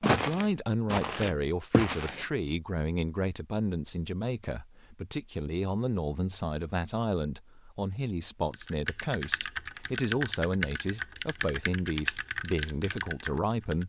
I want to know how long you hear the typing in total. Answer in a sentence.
You can hear the typing for 5 seconds altogether.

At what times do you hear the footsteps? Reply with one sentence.
The footsteps can be heard from 0.0 to 2.2 s.